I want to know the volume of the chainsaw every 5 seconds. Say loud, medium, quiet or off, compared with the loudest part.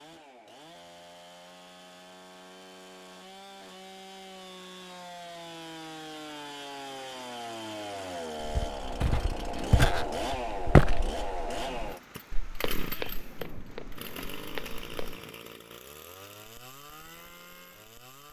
medium, loud, loud, medium.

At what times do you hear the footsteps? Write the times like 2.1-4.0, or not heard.
8.4-15.2.